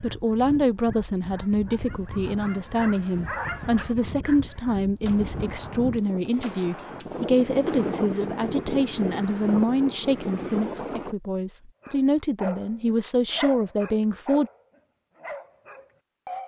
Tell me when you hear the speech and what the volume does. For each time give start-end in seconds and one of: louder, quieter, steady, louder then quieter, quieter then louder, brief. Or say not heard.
0.0-14.5 steady.